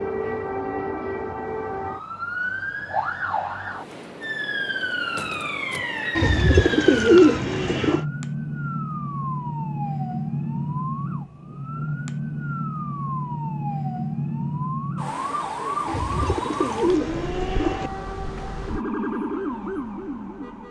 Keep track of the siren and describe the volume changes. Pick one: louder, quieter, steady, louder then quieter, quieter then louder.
steady.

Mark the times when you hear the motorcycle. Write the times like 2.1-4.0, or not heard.
not heard.